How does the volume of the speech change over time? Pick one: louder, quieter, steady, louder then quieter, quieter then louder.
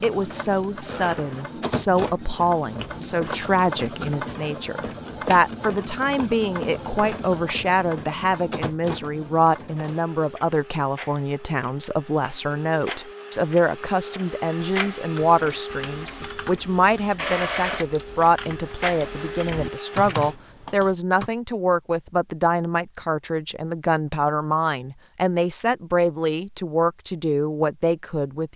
steady.